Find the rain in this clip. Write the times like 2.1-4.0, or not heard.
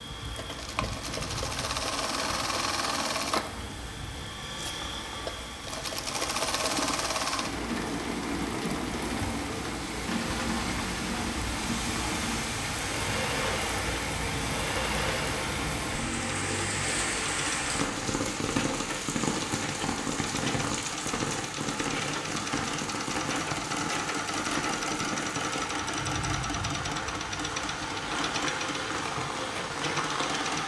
0.0-30.6.